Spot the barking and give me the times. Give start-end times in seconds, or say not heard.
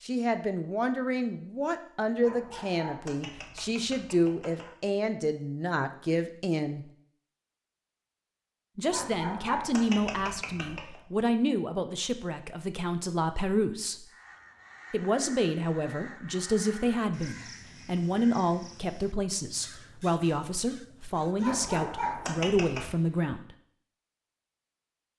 2.2-4.8, 8.9-11.0, 21.4-22.9.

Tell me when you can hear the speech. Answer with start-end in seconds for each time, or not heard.
0.0-6.8, 8.8-14.1, 14.9-23.6.